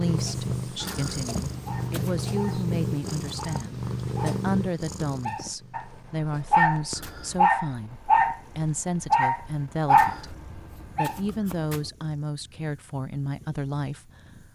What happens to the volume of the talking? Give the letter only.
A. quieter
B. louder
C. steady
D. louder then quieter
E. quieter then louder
C.